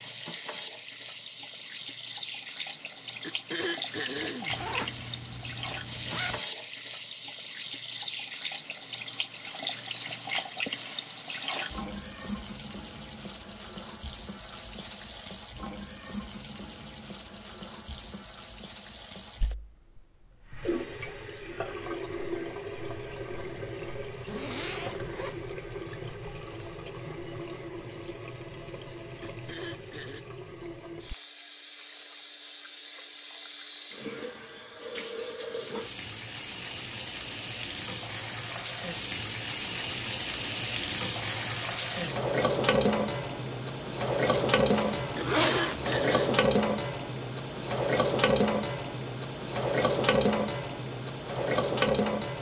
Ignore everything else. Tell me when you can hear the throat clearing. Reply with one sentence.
You can hear the throat clearing from 3.2 to 4.5 s, from 29.2 to 30.2 s and from 45.1 to 46.4 s.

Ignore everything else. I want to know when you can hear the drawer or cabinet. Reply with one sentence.
You can't hear the drawer or cabinet here.